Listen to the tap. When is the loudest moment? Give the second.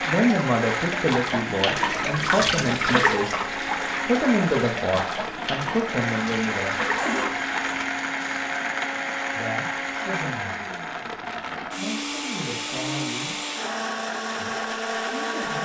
3 s.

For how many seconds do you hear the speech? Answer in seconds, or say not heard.
11 s.